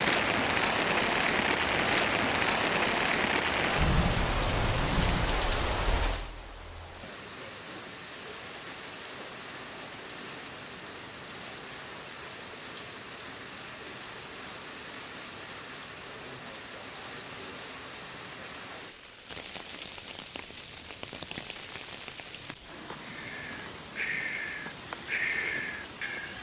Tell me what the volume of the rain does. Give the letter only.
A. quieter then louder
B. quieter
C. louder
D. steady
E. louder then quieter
B.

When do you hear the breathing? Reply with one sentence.
You can hear the breathing from 23.0 to 26.3 s.